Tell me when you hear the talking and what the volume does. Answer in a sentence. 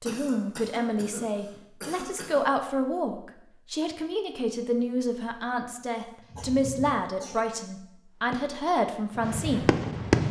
The talking can be heard from 0.0 to 9.8 s, at a steady volume.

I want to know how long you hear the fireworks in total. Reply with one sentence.
You can hear the fireworks for 2 seconds altogether.